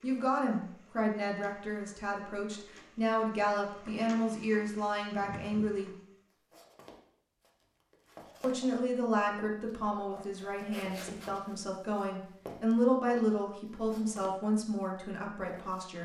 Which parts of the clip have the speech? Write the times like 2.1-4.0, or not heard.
0.0-5.9, 8.4-16.0.